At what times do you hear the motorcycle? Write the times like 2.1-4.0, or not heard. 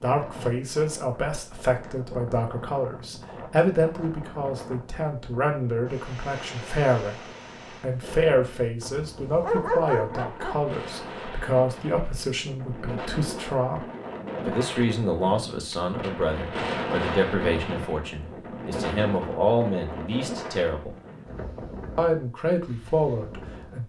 not heard.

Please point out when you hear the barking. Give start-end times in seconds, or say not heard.
9.4-11.1.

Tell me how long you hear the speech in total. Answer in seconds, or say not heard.
22 s.